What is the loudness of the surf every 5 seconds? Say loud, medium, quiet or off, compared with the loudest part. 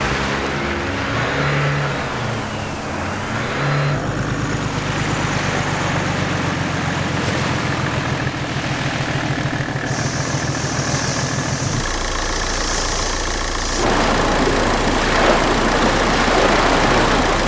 medium, medium, medium, loud.